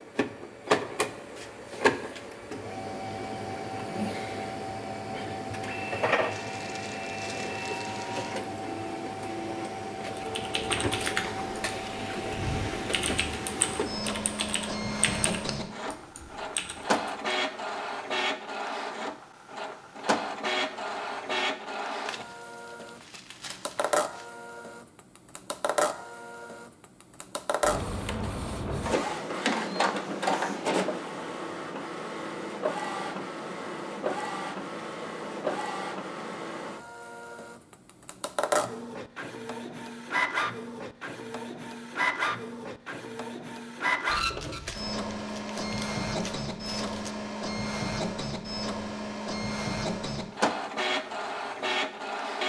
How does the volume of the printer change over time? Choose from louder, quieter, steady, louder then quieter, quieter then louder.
steady.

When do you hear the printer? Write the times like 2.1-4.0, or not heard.
0.0-52.4.